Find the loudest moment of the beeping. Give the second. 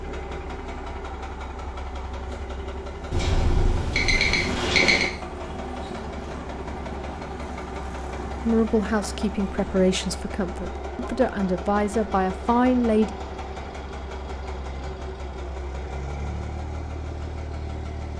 5 s.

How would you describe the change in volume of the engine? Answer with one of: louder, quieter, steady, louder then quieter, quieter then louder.
steady.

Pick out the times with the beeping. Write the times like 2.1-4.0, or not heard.
3.1-5.1.